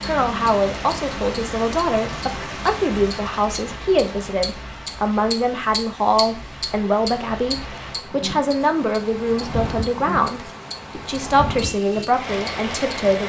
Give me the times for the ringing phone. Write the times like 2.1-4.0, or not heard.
not heard.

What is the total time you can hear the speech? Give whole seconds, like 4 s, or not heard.
13 s.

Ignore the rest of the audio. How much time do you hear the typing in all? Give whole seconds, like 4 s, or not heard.
not heard.